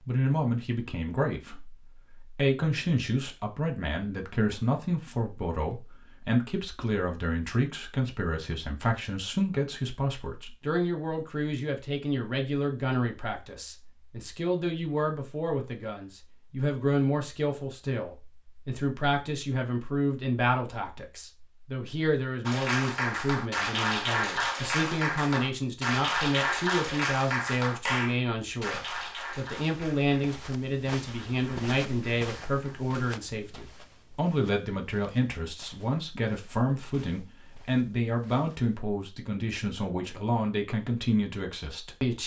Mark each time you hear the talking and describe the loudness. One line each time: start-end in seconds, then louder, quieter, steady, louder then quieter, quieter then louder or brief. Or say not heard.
0.1-42.2 steady.